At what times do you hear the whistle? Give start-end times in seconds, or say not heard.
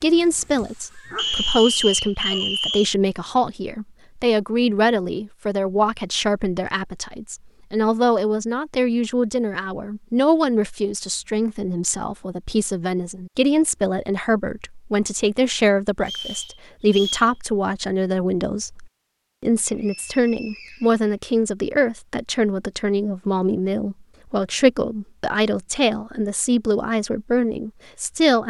1.1-3.0, 16.0-17.3, 19.6-21.0.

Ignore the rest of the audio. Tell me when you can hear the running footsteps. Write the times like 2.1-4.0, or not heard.
not heard.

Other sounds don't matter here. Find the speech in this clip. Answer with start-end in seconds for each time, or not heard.
0.0-28.4.